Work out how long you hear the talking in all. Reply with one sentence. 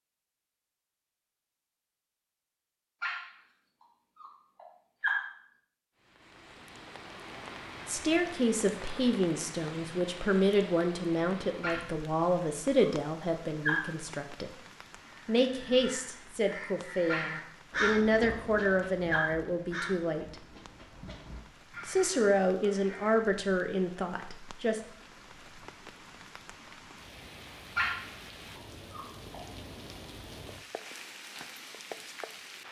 You can hear the talking for 15 seconds altogether.